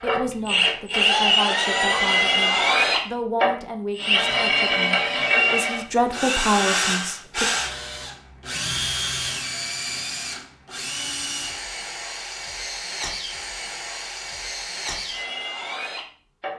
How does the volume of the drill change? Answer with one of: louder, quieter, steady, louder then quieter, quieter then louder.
quieter.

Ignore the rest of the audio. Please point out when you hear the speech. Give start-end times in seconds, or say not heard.
0.0-7.5.